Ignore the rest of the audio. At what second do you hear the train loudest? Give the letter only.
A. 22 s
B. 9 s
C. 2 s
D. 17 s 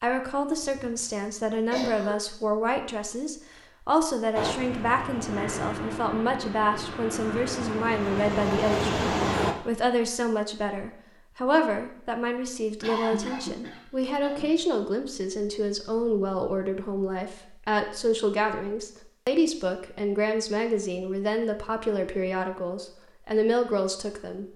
B.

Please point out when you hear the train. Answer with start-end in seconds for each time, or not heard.
4.3-9.6.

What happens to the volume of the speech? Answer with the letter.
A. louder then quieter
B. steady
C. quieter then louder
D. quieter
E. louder
B.